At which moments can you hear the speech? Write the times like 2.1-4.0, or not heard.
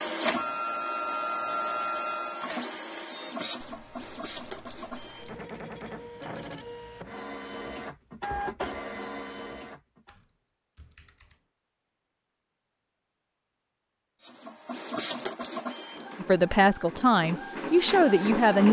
16.1-18.6.